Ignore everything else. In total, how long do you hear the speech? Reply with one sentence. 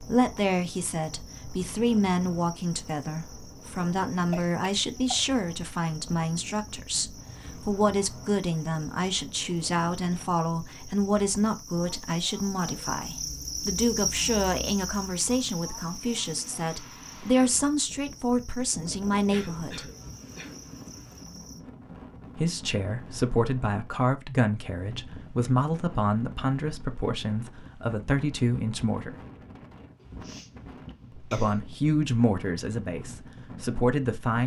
The speech can be heard for 30 seconds in total.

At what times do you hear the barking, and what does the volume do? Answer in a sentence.
You can't hear the barking here.